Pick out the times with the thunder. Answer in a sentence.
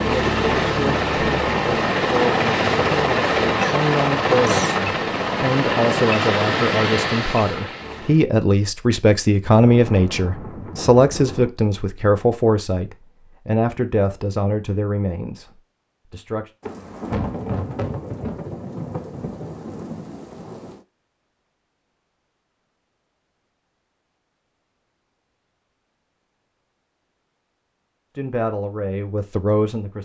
The thunder can be heard from 9.5 to 11.5 s and from 16.6 to 20.8 s.